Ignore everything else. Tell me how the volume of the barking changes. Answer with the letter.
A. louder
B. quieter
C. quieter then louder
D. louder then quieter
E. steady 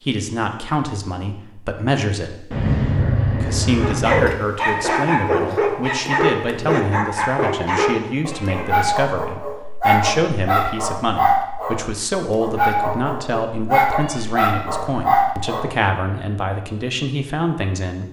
E.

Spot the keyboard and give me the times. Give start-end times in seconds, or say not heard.
not heard.